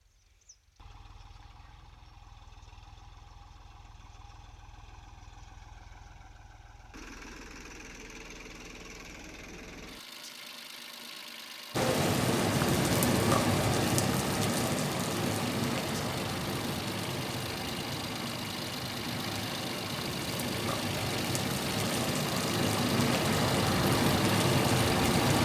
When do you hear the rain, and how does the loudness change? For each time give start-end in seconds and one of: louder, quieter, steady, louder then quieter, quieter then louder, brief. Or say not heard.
11.7-25.3 quieter then louder.